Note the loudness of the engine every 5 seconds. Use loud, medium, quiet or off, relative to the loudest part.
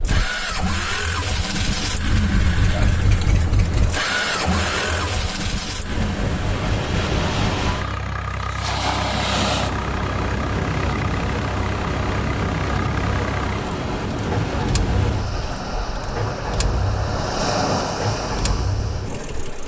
loud, medium, medium, medium.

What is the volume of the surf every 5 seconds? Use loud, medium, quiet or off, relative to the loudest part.
medium, loud, loud, loud.